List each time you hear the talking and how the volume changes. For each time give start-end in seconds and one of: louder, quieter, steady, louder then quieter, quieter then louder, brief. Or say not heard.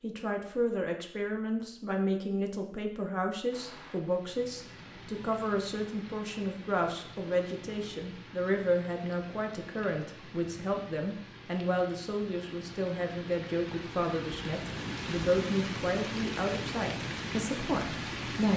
0.0-18.5 steady.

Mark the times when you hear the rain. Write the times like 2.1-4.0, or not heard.
3.5-18.5.